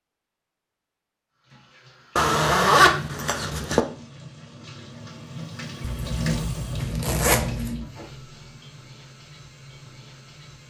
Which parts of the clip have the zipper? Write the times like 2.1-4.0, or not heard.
2.1-3.9, 5.8-7.8.